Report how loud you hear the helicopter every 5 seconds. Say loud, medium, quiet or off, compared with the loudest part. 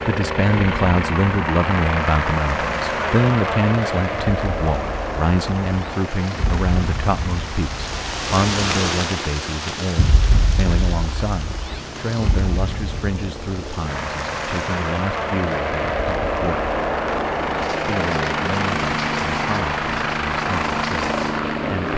loud, medium, medium, loud, loud.